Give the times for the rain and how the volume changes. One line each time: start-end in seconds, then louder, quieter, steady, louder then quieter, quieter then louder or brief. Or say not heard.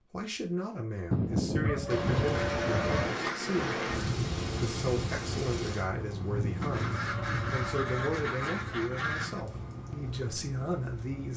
1.9-11.3 quieter.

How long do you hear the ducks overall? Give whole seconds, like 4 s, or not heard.
5 s.